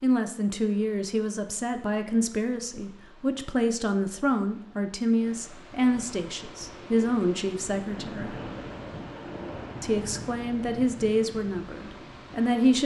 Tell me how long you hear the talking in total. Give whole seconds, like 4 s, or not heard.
11 s.